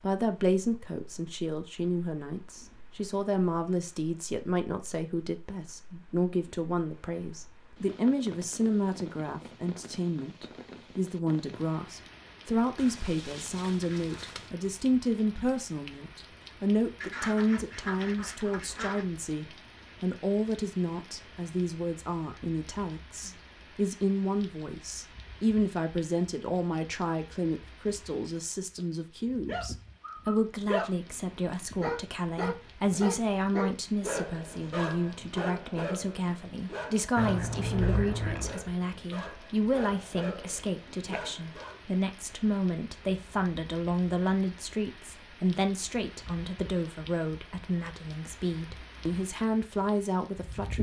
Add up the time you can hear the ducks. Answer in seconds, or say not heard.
5 s.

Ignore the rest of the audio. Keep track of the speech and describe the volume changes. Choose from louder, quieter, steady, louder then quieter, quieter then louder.
steady.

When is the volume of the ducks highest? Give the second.
38 s.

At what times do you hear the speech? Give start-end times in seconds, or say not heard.
0.0-50.7.